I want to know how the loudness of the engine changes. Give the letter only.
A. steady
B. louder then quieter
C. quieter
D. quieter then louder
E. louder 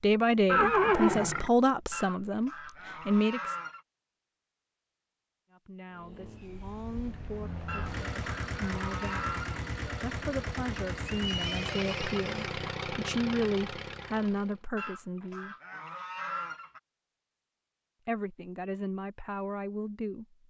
E.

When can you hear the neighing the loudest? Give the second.
1 s.